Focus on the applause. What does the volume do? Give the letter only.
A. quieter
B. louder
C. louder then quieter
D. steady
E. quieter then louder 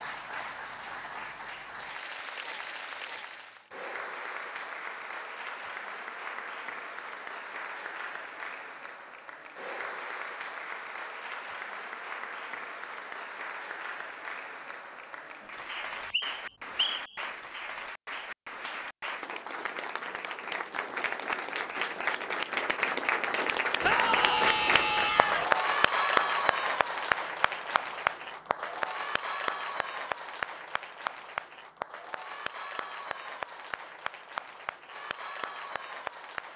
C.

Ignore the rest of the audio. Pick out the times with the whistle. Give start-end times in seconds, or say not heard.
15.8-17.2.